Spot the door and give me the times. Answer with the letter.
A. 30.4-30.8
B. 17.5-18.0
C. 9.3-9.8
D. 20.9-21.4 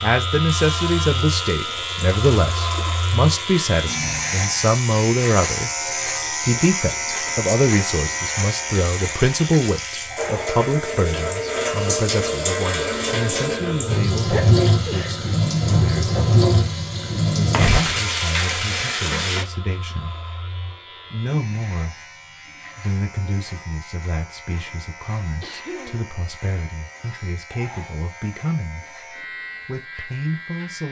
B.